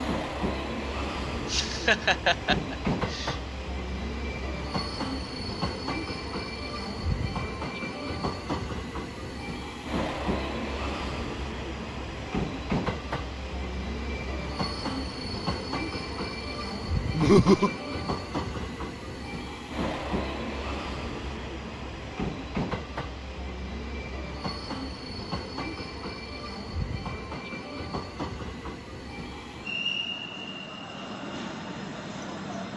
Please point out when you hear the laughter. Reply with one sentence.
You can hear the laughter from 1.4 to 3.4 s and from 17.1 to 17.7 s.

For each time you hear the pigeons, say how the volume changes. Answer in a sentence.
You can't hear the pigeons here.